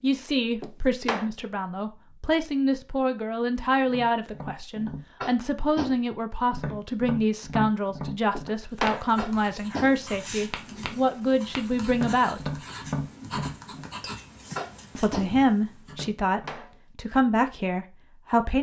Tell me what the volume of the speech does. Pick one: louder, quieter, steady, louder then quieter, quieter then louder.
steady.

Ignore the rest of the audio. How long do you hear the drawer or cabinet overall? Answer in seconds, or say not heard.
2 s.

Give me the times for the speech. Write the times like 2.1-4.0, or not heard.
0.0-12.6, 14.9-18.5.